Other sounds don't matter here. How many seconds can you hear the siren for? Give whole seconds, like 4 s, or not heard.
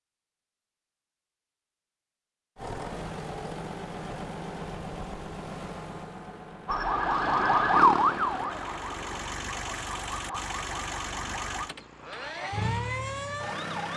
7 s.